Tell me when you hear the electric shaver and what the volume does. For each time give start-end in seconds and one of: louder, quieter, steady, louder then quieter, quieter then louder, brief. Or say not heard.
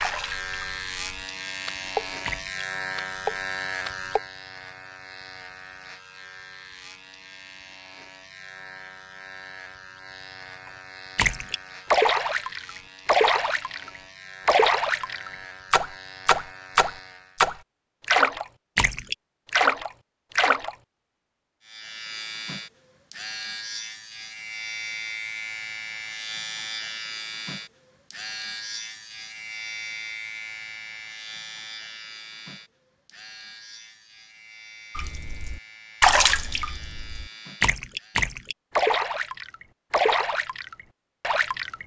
0.0-17.4 quieter
21.6-38.2 quieter.